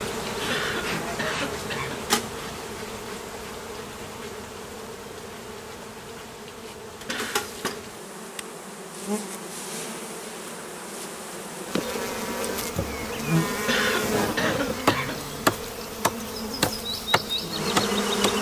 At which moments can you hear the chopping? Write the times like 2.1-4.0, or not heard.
14.8-18.3.